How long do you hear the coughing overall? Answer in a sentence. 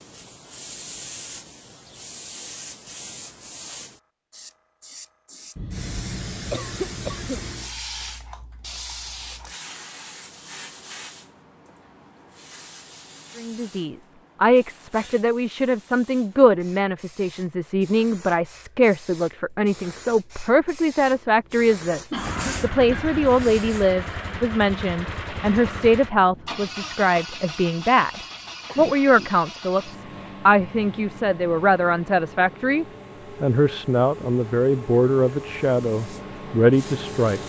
The coughing can be heard for 4 seconds in total.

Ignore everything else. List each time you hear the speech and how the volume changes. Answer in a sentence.
You can hear the speech from 13.3 to 37.4 s, at a steady volume.